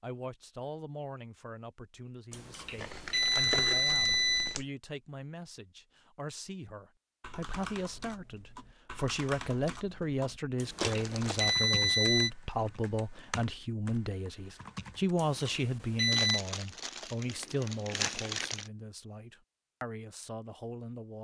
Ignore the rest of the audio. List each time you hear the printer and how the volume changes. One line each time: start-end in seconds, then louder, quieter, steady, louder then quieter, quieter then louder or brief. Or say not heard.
not heard.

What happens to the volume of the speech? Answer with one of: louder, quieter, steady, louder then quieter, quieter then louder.
louder then quieter.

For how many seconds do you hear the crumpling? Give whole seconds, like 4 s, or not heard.
5 s.